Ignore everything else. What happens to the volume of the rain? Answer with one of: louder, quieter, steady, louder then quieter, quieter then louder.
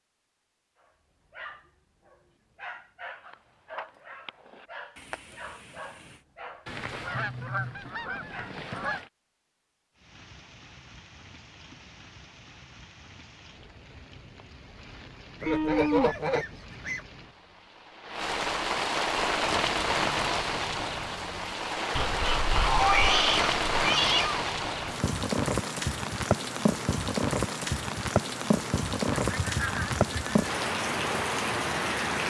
louder.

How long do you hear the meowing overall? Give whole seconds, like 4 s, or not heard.
3 s.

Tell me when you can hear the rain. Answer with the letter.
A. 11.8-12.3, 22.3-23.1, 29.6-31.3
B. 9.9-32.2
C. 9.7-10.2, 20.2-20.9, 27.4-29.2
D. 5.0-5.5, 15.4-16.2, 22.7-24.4
B.